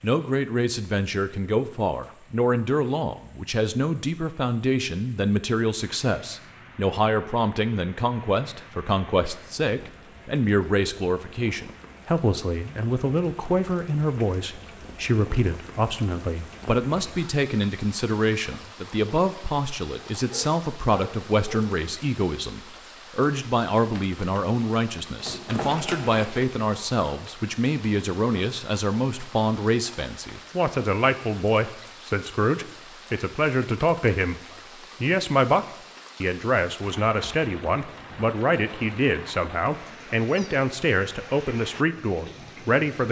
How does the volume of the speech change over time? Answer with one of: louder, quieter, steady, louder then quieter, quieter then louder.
steady.